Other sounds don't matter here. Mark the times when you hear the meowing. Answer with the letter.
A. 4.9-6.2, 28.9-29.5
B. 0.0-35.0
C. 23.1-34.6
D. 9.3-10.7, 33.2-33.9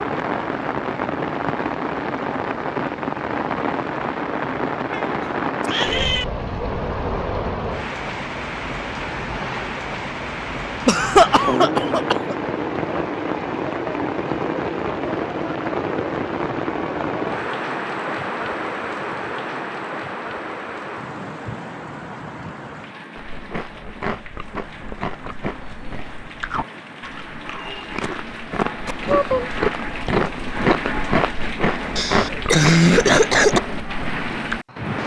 A.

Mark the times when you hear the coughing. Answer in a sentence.
You can hear the coughing from 10.8 to 12.3 s and from 31.9 to 33.6 s.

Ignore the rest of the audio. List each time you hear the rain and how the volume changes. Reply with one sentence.
The rain can be heard from 0.0 to 35.0 s, getting quieter then louder.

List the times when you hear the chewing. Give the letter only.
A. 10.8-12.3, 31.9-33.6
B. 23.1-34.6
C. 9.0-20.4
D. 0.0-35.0
B.